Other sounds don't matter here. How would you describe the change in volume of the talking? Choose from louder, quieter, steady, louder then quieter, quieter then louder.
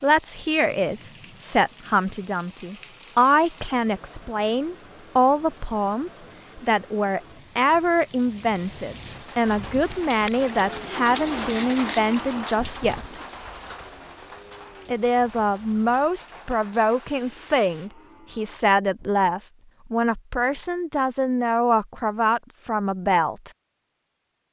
steady.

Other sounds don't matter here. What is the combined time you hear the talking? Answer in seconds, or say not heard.
22 s.